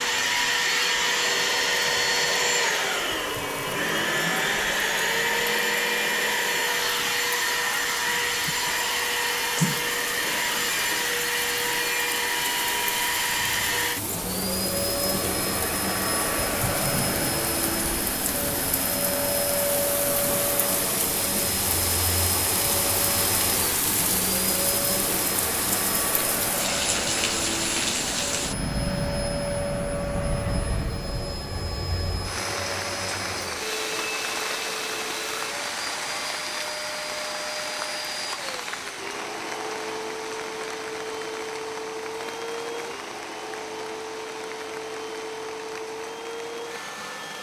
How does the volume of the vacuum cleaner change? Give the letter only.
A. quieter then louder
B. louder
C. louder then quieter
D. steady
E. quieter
E.